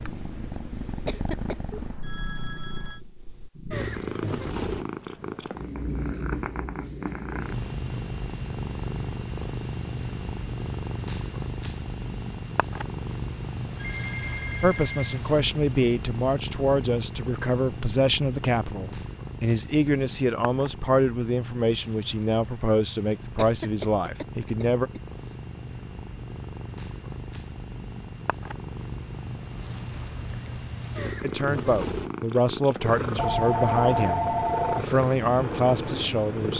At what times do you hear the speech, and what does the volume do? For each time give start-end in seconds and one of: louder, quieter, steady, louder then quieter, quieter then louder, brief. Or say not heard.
14.6-24.9 steady
31.2-36.5 steady.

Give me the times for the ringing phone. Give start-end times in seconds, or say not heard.
1.7-3.0, 13.8-15.2, 33.1-34.9.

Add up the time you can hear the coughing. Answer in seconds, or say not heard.
2 s.